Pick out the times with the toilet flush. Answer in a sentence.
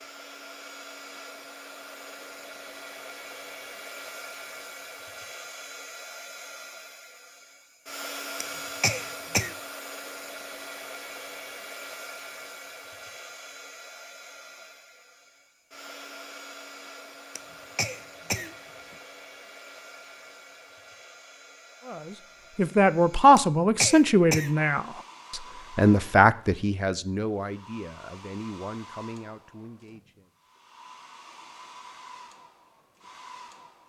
You can't hear the toilet flush here.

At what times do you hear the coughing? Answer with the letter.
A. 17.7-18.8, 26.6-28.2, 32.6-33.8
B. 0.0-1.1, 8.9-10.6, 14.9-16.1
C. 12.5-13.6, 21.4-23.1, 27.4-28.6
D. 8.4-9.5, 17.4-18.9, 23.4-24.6
D.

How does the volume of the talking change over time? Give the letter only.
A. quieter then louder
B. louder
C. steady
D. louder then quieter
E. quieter
E.